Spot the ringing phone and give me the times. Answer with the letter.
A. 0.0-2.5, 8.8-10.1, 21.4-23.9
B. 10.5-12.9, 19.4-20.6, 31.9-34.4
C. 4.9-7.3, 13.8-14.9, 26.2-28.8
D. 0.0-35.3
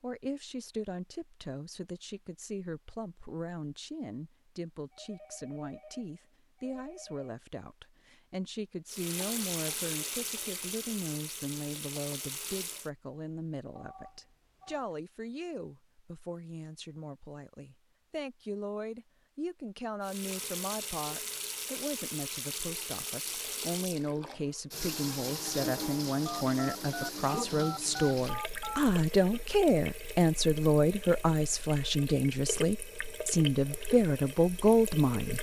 C.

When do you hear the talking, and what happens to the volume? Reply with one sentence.
The talking can be heard from 0.0 to 35.3 s, getting louder.